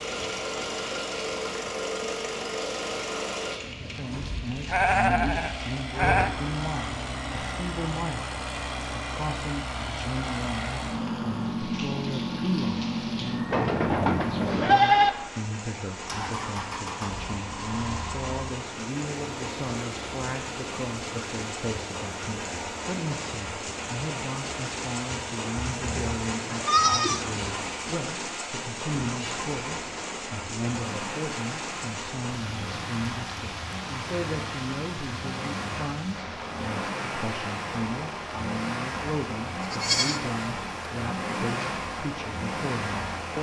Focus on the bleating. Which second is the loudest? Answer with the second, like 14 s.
15 s.